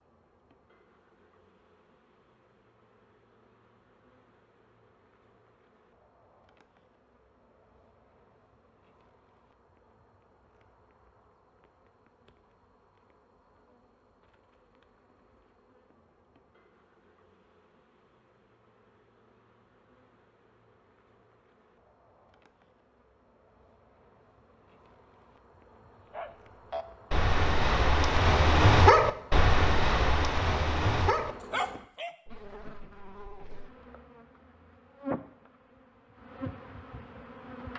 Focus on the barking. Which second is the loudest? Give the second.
29 s.